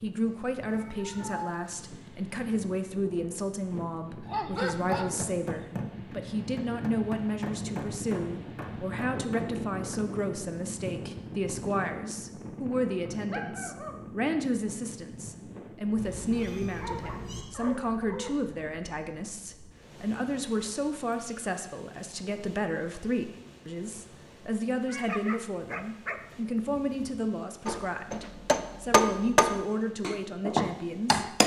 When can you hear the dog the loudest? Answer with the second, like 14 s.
5 s.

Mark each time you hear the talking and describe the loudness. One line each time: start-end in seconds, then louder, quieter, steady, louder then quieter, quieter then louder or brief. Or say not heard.
0.0-31.4 steady.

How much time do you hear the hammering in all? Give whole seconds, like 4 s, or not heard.
9 s.